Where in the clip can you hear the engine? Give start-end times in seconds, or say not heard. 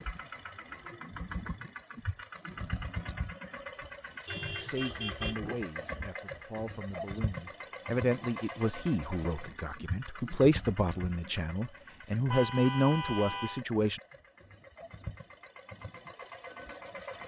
0.0-17.2.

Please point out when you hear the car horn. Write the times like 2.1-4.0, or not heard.
4.2-5.4, 12.3-13.7.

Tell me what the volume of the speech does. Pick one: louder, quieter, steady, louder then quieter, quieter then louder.
louder.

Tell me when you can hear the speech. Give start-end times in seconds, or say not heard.
4.6-14.0.